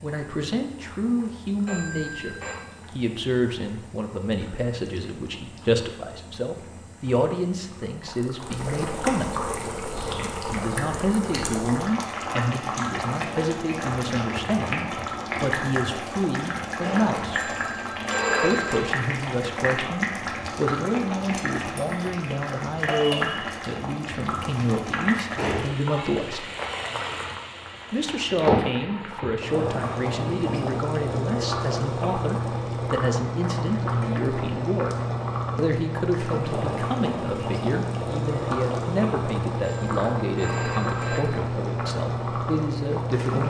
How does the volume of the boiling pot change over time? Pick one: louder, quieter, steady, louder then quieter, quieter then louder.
louder.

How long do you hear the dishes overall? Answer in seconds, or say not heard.
not heard.